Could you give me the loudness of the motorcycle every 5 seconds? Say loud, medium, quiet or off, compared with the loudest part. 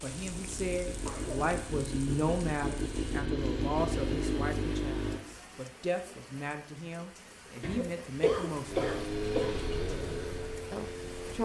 loud, loud, medium.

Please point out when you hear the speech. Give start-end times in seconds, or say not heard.
0.0-9.1, 10.7-11.4.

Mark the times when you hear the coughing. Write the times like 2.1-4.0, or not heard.
0.9-1.6, 7.6-9.6.